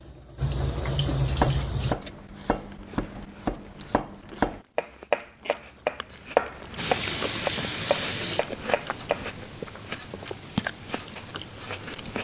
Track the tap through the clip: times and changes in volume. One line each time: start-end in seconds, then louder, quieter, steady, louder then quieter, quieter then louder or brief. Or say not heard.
0.0-1.9 brief
6.8-12.1 quieter.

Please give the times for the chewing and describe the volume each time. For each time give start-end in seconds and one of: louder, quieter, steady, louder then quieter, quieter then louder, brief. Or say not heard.
2.7-12.1 louder.